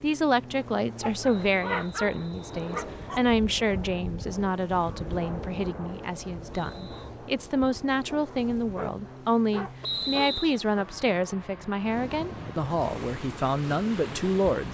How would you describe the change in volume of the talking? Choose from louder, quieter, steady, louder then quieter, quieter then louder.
steady.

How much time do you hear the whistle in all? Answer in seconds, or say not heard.
3 s.